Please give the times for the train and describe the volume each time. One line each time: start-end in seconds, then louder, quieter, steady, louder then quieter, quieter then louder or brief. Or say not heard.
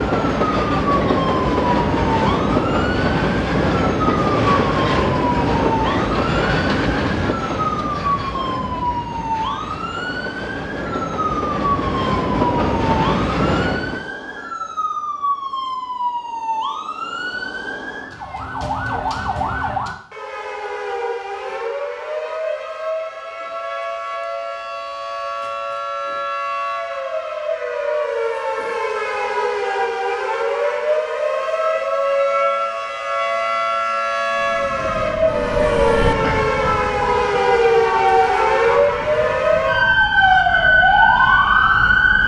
0.0-14.1 quieter then louder
34.2-42.2 quieter.